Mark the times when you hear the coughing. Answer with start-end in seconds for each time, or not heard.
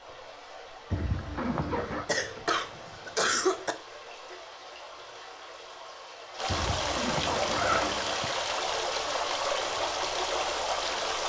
2.0-3.8.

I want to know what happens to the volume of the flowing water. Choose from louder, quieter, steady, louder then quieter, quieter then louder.
louder.